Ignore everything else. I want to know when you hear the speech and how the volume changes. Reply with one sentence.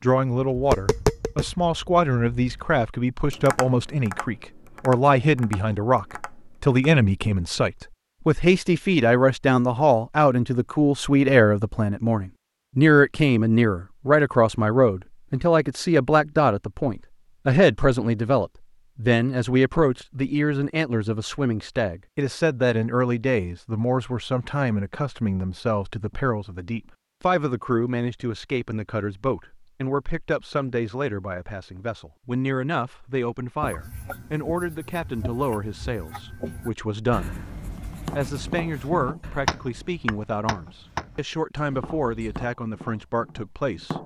The speech can be heard from 0.0 to 44.0 s, getting quieter.